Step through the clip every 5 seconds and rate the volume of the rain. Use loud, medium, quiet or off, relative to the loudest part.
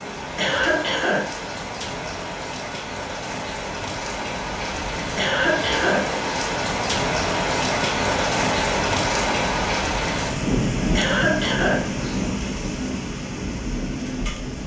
medium, loud, loud.